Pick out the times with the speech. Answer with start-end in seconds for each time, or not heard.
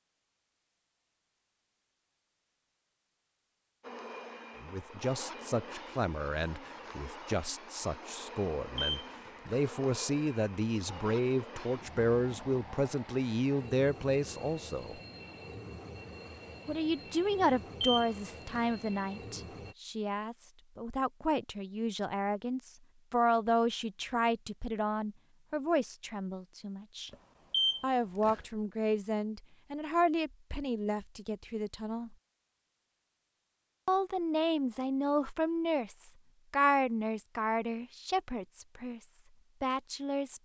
4.6-15.0, 16.6-27.1, 27.8-32.1, 33.9-40.4.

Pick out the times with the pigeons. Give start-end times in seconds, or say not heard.
not heard.